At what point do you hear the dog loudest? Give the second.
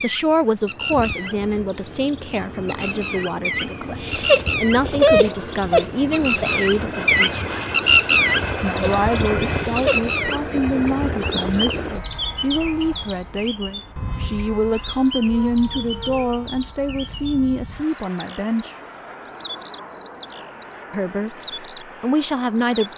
5 s.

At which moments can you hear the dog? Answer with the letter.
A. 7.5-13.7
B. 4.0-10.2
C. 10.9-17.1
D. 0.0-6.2
B.